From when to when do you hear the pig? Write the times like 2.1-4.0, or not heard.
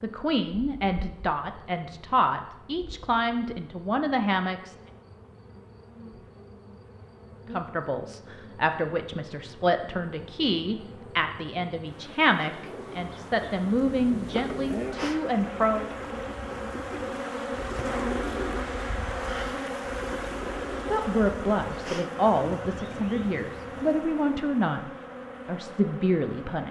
not heard.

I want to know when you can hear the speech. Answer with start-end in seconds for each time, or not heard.
0.0-4.8, 7.5-15.9, 20.9-24.8, 25.4-26.6.